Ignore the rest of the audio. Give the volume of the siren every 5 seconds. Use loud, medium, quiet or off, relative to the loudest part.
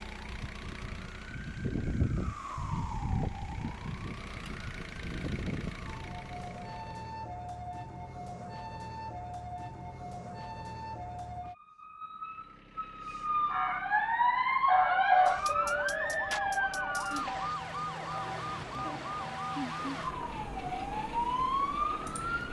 medium, medium, loud, loud, loud.